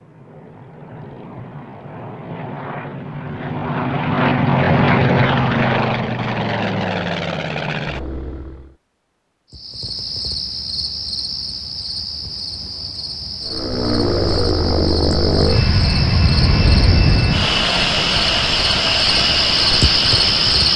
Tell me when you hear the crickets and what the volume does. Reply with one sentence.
You can hear the crickets from 9.5 to 20.7 s, getting louder.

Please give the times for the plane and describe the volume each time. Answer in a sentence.
You can hear the plane from 0.0 to 8.8 s, getting louder then quieter; and from 13.4 to 20.7 s, at a steady volume.